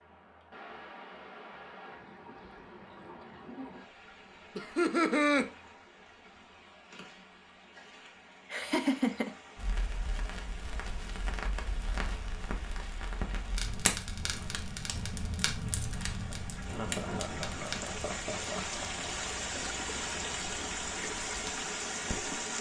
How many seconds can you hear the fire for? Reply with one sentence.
The fire can be heard for 13 seconds in total.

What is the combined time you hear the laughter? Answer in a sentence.
You can hear the laughter for 4 seconds altogether.